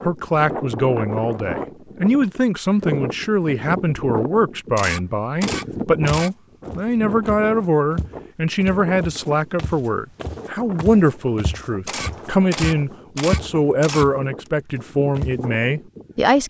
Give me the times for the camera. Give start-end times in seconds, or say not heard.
4.8-6.3, 11.8-14.5.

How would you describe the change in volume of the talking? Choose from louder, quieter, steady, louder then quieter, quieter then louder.
steady.